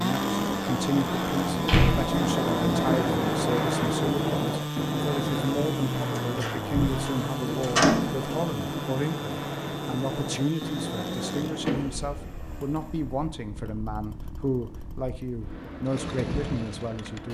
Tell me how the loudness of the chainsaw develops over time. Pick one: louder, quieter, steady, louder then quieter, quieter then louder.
quieter.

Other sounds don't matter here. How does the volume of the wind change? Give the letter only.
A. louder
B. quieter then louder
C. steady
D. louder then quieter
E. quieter
E.